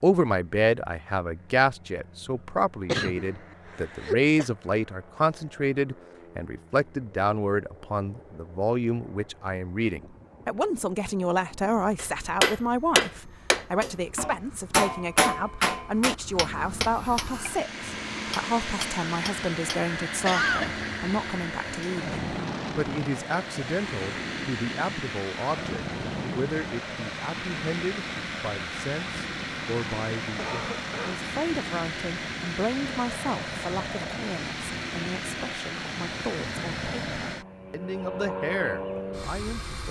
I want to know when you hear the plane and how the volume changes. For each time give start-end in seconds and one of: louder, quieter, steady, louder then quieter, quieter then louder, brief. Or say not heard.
0.2-39.8 louder.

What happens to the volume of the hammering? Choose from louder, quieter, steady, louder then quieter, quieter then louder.
quieter.